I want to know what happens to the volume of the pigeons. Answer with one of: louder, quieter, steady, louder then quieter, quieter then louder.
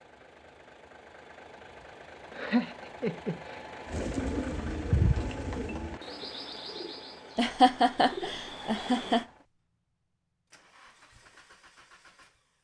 quieter then louder.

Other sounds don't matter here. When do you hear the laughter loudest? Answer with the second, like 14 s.
8 s.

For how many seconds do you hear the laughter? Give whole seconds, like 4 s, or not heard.
3 s.